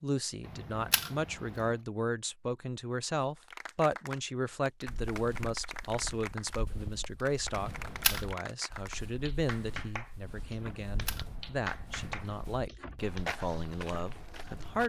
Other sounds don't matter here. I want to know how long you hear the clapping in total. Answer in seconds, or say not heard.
10 s.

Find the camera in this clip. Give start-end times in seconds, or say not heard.
0.5-1.7, 7.5-8.2, 10.6-12.6.